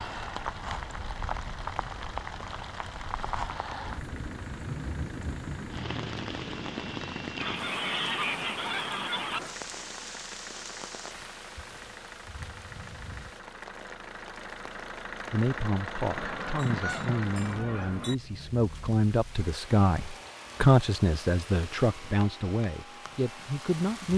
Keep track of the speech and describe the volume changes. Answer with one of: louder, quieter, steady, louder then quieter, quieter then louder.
louder then quieter.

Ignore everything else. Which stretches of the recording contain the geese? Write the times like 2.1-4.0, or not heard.
7.4-9.4, 16.1-18.1.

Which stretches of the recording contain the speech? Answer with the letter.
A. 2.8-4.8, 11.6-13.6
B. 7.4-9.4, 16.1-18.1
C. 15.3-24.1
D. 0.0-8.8
C.